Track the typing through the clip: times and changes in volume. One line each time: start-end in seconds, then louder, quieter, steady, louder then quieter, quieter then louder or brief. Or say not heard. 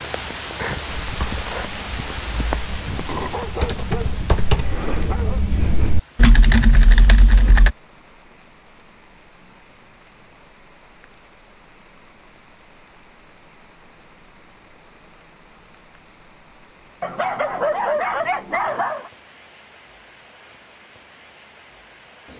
0.8-7.8 louder.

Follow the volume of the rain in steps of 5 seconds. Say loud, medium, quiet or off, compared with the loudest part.
loud, quiet, quiet, quiet, quiet.